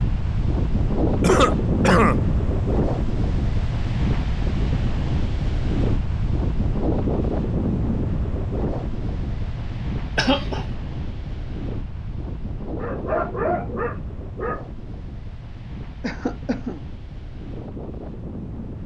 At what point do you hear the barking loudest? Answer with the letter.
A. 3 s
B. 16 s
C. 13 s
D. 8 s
C.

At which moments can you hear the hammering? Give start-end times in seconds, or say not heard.
not heard.